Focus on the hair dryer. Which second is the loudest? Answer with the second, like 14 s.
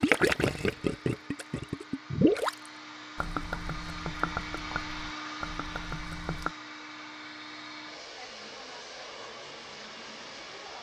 5 s.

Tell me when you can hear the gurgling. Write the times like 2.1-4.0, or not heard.
0.0-6.5.